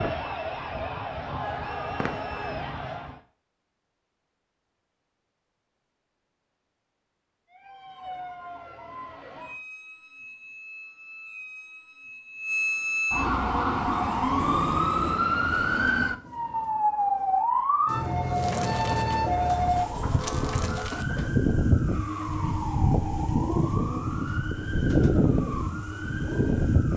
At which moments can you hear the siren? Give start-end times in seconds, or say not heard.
0.0-3.2, 7.5-26.9.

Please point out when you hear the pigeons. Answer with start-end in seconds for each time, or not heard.
18.3-26.9.